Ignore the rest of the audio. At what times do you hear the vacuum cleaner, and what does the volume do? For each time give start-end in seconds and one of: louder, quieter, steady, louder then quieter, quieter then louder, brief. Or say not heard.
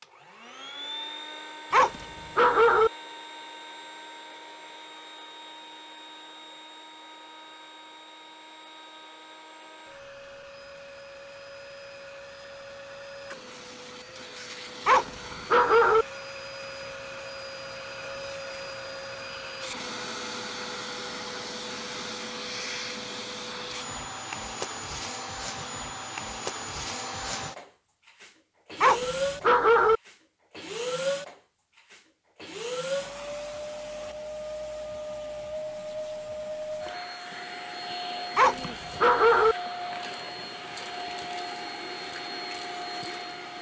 0.0-43.5 louder.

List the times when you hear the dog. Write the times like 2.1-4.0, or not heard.
1.7-2.9, 14.8-16.1, 28.8-30.0, 38.4-39.5.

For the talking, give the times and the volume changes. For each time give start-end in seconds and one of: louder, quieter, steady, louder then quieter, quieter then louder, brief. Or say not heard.
not heard.